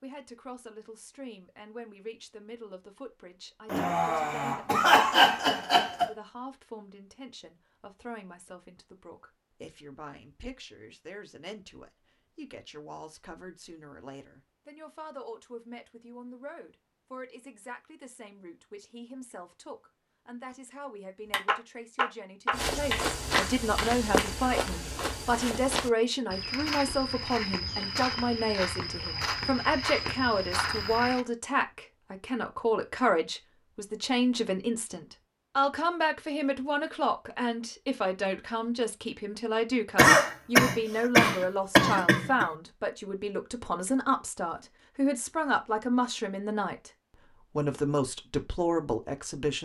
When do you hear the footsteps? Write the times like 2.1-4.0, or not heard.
22.5-31.2.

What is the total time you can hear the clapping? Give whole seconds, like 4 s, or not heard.
3 s.